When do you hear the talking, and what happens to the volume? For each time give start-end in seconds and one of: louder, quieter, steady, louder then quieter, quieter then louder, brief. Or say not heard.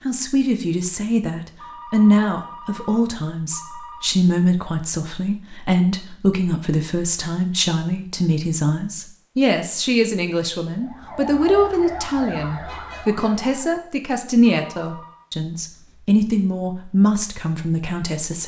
0.1-18.4 steady.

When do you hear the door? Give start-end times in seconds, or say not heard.
not heard.